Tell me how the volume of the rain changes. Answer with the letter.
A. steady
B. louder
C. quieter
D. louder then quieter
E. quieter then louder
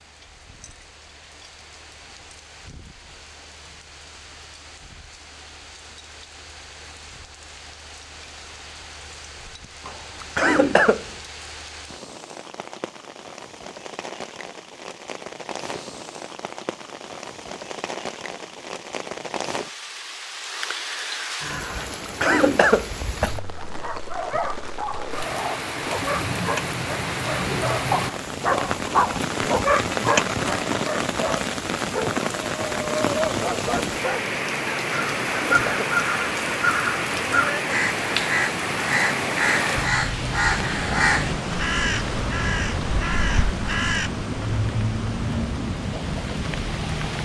B.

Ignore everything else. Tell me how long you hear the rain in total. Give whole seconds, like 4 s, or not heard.
47 s.